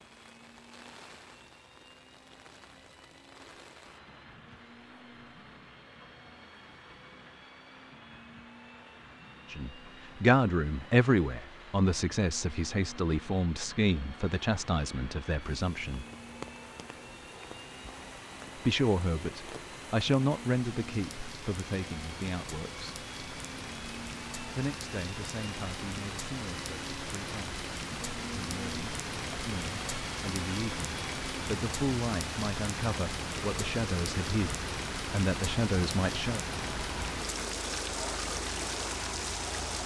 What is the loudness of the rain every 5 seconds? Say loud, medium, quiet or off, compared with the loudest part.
quiet, quiet, quiet, medium, medium, loud, loud, loud.